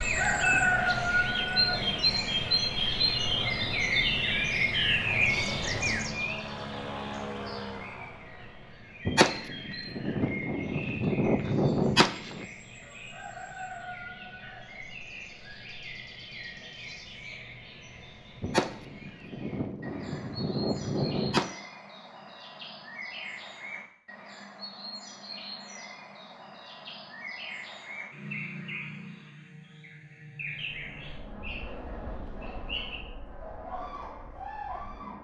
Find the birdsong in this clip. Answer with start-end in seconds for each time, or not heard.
0.0-35.1.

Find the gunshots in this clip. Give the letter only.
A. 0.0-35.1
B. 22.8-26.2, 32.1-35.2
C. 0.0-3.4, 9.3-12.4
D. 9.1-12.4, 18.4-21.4
D.